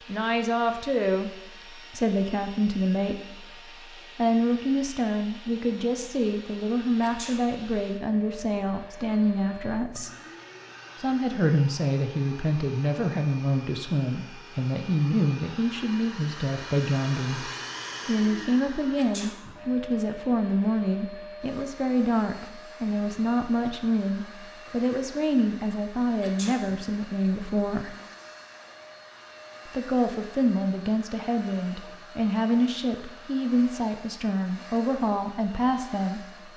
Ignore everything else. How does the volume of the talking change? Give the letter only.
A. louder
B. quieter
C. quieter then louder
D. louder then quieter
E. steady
E.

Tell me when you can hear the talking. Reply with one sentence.
You can hear the talking from 0.1 to 3.5 s, from 4.2 to 10.1 s, from 11.0 to 27.9 s and from 29.6 to 36.5 s.